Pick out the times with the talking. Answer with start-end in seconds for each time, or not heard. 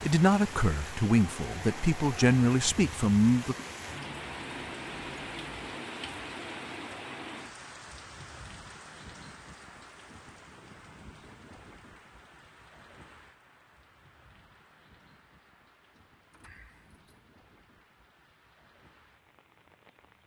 0.0-3.5.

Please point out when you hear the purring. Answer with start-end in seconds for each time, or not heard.
not heard.